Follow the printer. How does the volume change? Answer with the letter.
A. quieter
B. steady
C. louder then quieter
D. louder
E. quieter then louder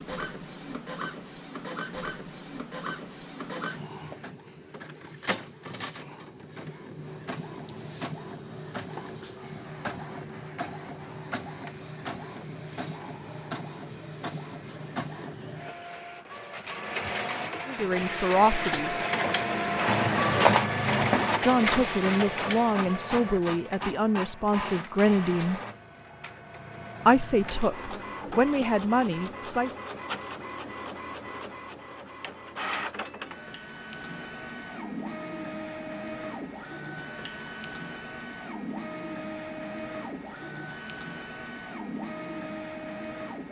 C.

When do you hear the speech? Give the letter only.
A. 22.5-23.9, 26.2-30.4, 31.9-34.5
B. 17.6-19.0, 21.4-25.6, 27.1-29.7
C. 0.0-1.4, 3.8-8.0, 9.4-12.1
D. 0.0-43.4
B.